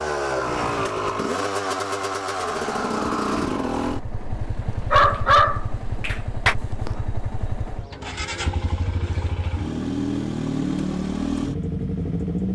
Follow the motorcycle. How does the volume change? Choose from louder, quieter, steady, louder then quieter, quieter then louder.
quieter then louder.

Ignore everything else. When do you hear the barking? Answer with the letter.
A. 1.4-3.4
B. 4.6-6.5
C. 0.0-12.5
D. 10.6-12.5
B.